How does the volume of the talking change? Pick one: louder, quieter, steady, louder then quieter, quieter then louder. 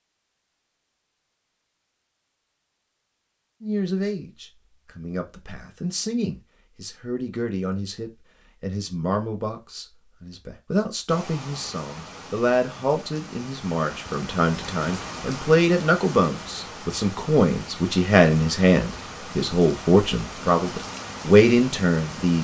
louder.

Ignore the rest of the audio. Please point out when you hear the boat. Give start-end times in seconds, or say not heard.
not heard.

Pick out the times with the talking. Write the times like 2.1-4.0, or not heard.
3.6-22.3.